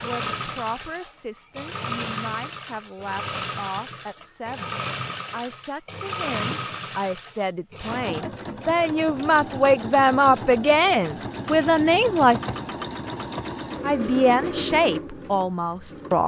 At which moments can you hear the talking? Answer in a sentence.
The talking can be heard from 0.0 to 12.4 s and from 13.8 to 16.2 s.